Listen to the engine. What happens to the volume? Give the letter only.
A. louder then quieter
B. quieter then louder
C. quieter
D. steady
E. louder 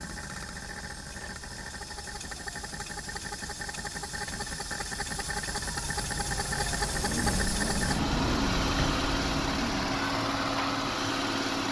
E.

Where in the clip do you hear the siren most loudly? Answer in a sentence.
The loudest moment of the siren is at 8 seconds.